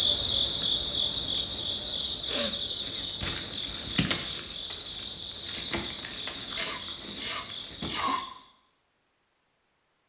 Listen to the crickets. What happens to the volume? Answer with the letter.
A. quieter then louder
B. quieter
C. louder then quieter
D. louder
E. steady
B.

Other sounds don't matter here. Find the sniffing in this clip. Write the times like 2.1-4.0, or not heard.
2.2-3.0, 6.5-8.2.